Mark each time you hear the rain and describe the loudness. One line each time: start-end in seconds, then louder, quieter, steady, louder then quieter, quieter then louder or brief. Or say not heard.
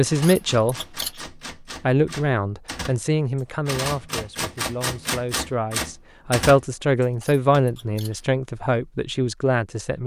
not heard.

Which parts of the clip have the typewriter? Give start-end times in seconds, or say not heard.
0.1-7.6.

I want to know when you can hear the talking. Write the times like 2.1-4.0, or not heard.
0.0-0.8, 1.6-10.0.